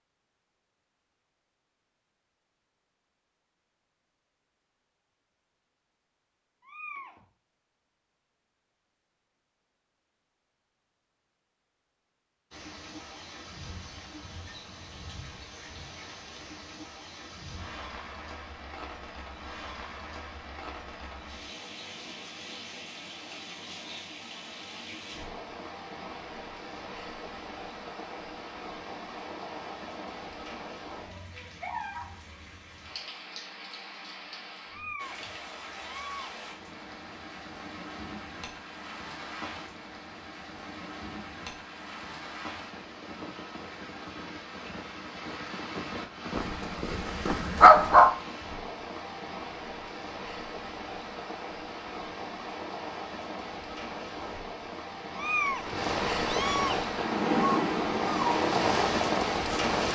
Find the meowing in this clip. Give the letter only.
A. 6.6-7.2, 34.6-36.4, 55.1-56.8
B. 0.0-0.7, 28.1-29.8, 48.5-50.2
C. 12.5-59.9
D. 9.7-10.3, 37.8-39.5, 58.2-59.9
A.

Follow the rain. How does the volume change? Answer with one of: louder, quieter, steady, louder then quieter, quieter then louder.
louder.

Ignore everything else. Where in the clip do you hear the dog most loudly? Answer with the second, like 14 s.
48 s.